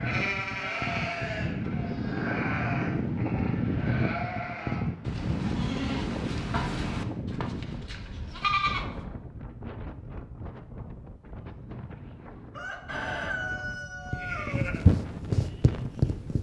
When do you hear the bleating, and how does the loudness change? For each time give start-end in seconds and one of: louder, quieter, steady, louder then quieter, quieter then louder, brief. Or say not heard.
0.0-8.9 steady
14.1-16.3 brief.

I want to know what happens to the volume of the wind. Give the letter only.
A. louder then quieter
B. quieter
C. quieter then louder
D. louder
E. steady
B.